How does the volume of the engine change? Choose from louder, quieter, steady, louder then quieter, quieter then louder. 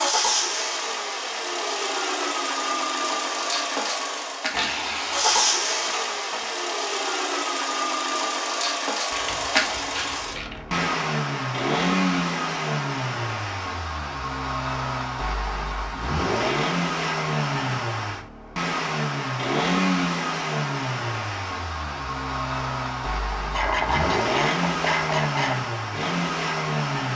steady.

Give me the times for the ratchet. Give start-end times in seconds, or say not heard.
4.5-6.4, 9.1-10.8, 23.5-25.6.